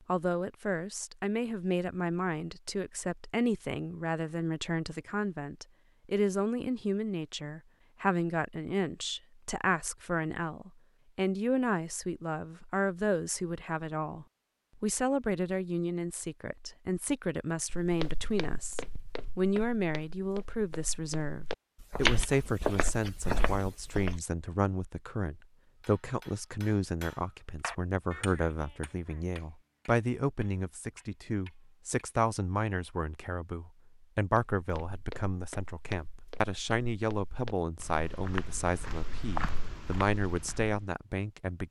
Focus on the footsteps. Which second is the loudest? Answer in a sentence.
The loudest moment of the footsteps is at 22 seconds.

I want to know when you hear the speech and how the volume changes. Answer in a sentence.
The speech can be heard from 0.1 to 41.6 s, at a steady volume.